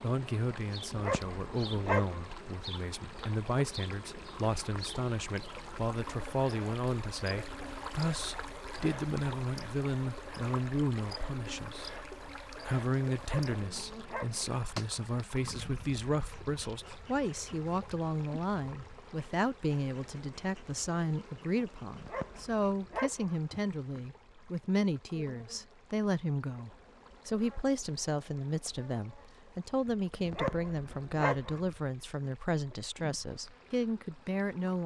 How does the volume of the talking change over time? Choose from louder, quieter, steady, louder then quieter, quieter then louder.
steady.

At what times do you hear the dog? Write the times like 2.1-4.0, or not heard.
0.9-2.3, 13.2-14.4, 21.9-23.4, 30.2-31.6.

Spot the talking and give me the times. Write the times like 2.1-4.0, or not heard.
0.0-34.8.